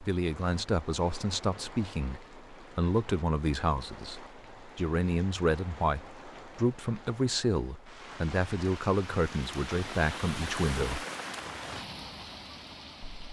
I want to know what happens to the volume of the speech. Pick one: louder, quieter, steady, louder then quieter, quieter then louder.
steady.